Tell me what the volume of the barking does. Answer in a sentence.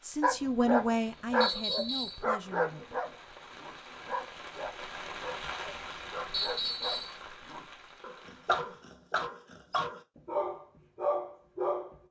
The volume of the barking goes down, then up.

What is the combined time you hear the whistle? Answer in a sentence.
The whistle can be heard for 2 seconds in total.